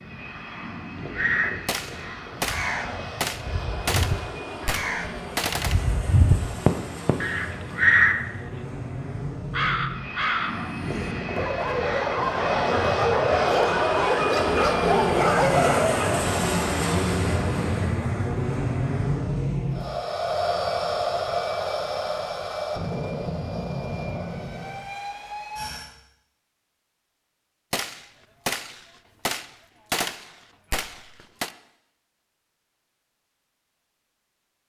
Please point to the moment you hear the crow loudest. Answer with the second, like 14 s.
8 s.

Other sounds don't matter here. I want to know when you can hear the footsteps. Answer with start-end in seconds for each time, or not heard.
not heard.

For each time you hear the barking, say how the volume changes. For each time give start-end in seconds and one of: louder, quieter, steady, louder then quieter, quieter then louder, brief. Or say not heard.
10.6-16.1 louder.